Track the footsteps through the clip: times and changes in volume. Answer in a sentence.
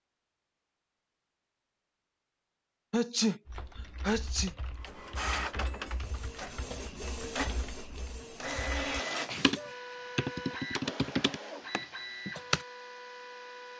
The footsteps can't be heard in this clip.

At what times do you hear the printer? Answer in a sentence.
You can hear the printer from 4.8 to 13.7 s.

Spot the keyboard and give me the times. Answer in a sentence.
The keyboard can be heard from 3.5 to 12.7 s.